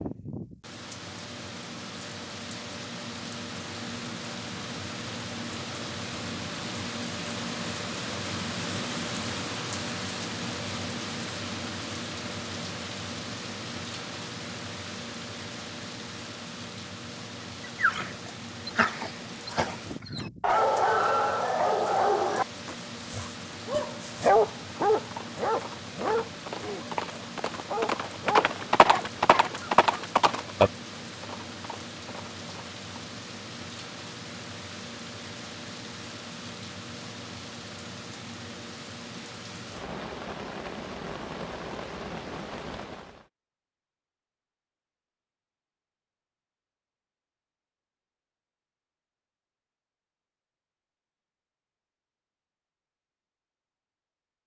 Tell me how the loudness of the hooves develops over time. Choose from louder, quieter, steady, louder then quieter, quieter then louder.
louder then quieter.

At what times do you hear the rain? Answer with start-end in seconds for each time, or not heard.
0.0-43.3.